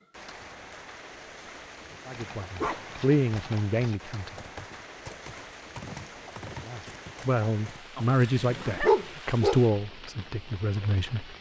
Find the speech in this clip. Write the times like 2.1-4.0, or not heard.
2.0-4.3, 6.7-11.3.